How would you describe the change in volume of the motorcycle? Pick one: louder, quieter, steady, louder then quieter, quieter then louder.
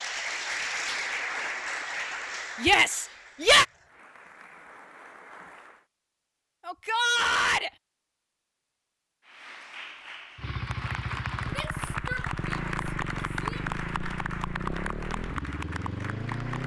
steady.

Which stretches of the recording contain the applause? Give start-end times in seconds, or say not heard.
0.0-5.8, 9.2-16.6.